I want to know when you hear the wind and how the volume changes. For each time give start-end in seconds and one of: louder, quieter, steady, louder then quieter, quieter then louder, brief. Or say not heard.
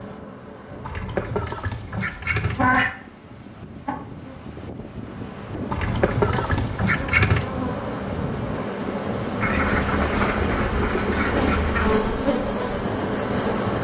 0.0-13.7 louder.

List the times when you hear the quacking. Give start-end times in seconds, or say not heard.
0.8-3.0, 5.7-7.5, 9.4-12.0.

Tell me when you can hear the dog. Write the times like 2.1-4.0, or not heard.
not heard.